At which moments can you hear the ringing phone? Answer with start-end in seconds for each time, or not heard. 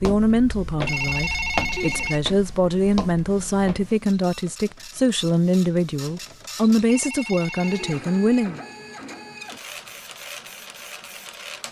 0.8-2.2, 6.8-8.1.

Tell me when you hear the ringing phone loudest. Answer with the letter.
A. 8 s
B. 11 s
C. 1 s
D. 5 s
C.